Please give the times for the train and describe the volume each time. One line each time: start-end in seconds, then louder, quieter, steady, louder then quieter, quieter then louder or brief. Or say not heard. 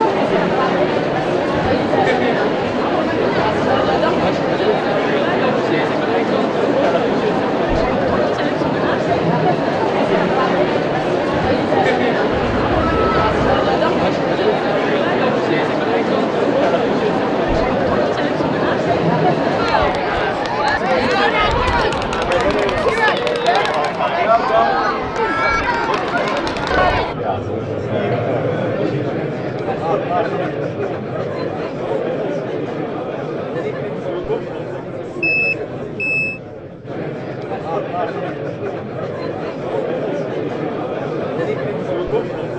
not heard.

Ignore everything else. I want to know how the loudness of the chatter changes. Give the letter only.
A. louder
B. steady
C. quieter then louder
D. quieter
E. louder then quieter
D.